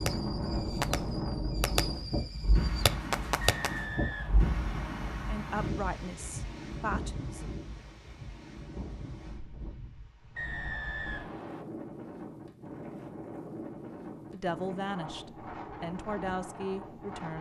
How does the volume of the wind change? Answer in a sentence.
The volume of the wind goes down.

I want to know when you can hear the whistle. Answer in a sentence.
The whistle can be heard from 3.4 to 5.1 s and from 10.3 to 11.7 s.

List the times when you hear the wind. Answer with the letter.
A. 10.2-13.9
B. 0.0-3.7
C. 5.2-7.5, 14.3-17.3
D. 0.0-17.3
D.